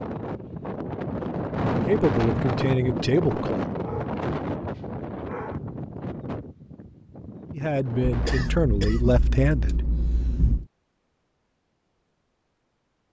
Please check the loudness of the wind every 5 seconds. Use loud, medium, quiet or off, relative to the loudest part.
loud, medium, off.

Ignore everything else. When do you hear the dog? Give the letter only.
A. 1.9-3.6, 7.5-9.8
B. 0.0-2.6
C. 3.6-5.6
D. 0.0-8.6
C.